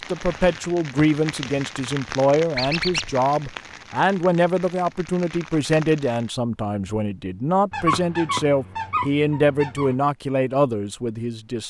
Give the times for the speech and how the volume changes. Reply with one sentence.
You can hear the speech from 0.1 to 11.6 s, at a steady volume.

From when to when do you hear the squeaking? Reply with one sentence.
The squeaking can be heard from 2.5 to 3.1 s and from 7.7 to 9.9 s.